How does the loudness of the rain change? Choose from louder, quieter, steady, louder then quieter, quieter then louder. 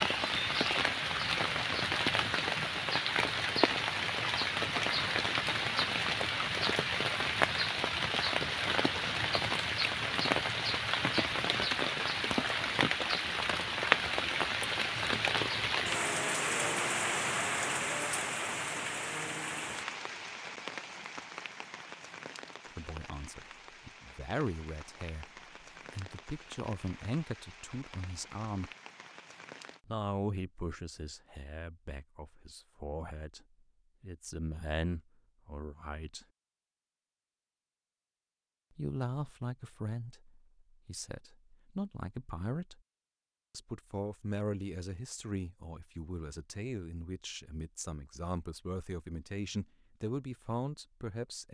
quieter.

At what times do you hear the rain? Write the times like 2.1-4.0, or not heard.
0.0-29.8.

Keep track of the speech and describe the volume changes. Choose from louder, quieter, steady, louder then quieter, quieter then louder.
steady.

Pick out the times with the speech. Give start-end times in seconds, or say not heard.
22.8-28.7, 29.9-36.2, 38.8-42.8, 43.5-51.4.